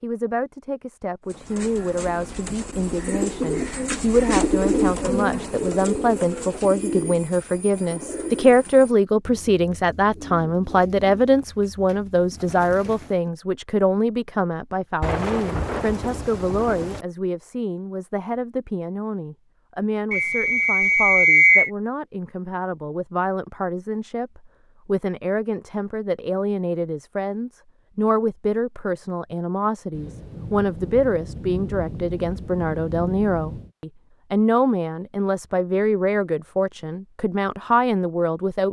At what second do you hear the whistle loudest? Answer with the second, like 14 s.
21 s.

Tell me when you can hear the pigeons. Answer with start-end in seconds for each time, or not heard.
1.2-13.2.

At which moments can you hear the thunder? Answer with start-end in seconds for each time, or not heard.
15.0-17.1, 29.9-33.7.